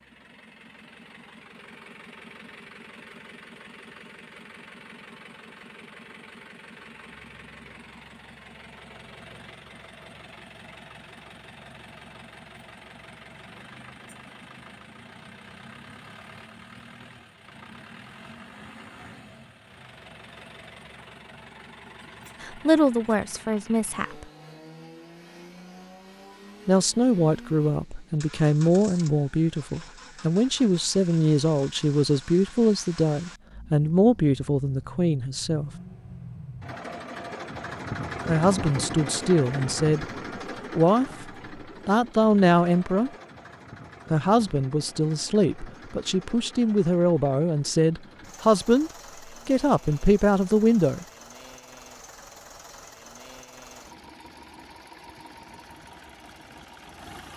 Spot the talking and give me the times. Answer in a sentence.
You can hear the talking from 22.4 to 24.2 s, from 26.6 to 35.7 s, from 38.2 to 40.0 s, from 40.7 to 43.1 s and from 44.1 to 51.0 s.